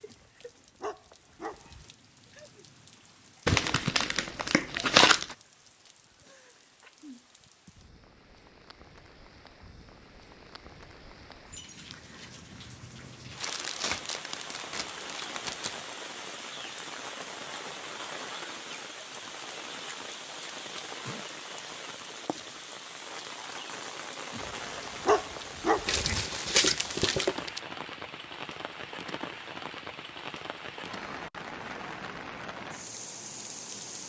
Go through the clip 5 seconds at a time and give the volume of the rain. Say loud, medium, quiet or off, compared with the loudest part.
quiet, quiet, medium, loud, loud, loud, loud.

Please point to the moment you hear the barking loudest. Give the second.
25 s.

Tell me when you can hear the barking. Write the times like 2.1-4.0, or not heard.
0.1-1.9, 24.3-26.2.